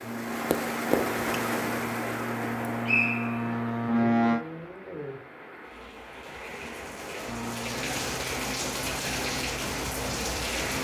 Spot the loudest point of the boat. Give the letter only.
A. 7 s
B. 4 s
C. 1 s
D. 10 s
B.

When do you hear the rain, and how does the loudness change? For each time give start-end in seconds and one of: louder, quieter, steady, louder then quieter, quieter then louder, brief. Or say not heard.
0.0-10.8 quieter then louder.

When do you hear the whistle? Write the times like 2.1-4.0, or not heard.
2.9-3.6.